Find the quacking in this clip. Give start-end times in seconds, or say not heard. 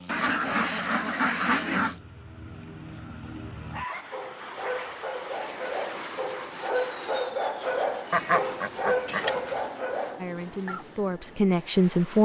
0.1-1.9, 8.1-9.6.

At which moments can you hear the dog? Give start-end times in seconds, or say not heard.
3.7-10.8.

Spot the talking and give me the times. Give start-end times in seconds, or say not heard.
10.2-12.2.